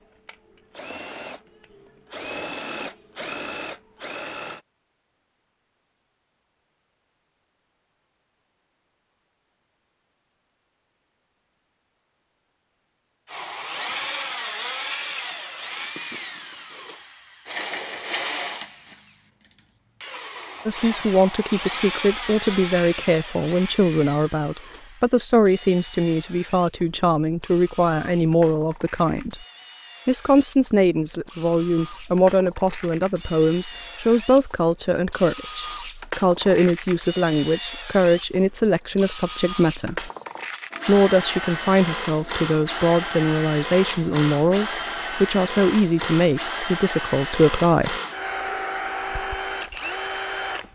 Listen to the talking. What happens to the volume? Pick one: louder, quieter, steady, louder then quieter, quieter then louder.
steady.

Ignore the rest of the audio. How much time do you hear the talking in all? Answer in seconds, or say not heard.
26 s.